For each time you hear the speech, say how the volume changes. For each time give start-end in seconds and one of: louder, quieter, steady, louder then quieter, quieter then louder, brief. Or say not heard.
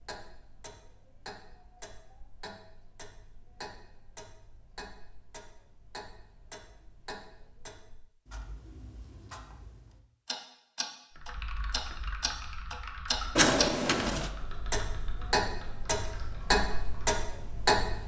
not heard.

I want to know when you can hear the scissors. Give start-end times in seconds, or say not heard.
13.3-14.3.